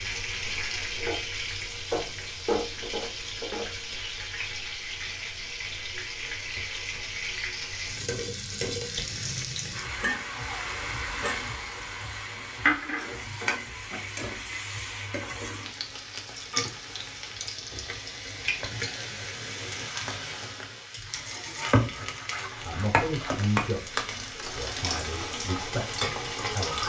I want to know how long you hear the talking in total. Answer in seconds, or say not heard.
4 s.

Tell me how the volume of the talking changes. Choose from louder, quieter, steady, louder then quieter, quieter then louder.
quieter then louder.